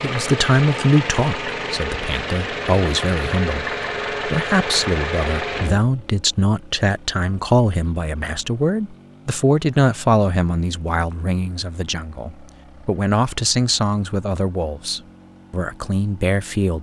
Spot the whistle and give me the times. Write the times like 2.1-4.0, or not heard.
not heard.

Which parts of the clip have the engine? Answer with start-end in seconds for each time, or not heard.
0.0-16.7.